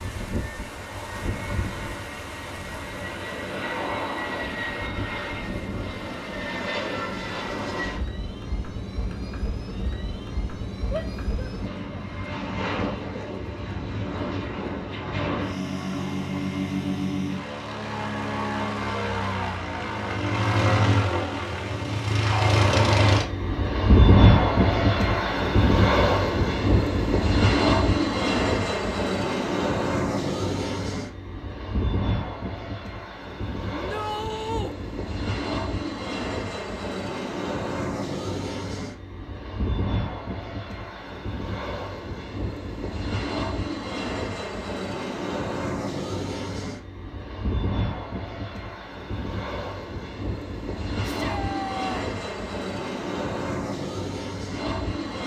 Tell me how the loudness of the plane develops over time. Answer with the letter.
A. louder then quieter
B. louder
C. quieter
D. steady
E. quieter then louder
A.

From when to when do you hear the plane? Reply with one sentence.
You can hear the plane from 0.0 to 55.2 s.